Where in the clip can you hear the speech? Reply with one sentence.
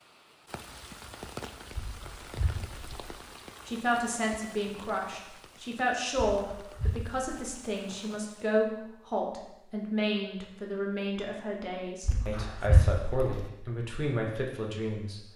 You can hear the speech from 3.6 to 15.2 s.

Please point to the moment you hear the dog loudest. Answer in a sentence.
The loudest moment of the dog is at 13 seconds.